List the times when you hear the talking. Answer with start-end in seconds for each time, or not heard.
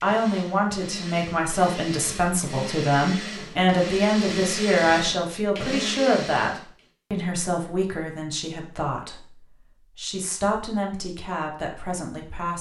0.0-12.5.